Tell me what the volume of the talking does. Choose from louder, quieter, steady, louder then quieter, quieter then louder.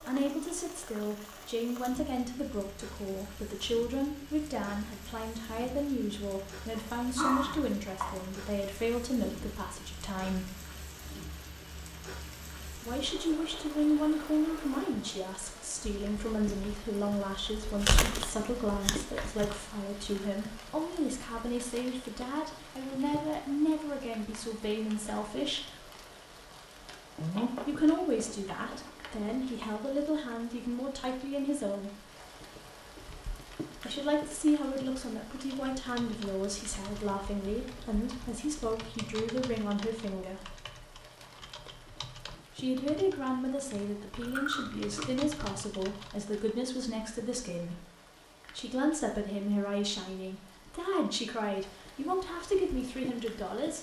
steady.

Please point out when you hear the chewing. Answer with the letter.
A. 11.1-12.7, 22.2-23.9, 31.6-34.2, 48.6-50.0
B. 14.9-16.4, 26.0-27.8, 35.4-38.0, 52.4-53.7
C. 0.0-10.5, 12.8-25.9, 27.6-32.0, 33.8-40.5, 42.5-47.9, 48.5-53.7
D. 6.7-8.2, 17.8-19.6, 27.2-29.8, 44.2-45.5
D.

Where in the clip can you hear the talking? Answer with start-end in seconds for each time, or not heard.
0.0-10.5, 12.8-25.9, 27.6-32.0, 33.8-40.5, 42.5-47.9, 48.5-53.7.